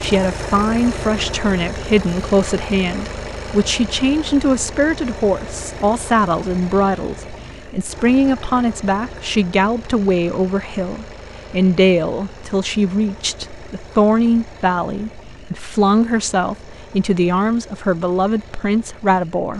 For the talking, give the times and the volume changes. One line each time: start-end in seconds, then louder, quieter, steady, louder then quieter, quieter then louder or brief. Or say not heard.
0.0-19.5 steady.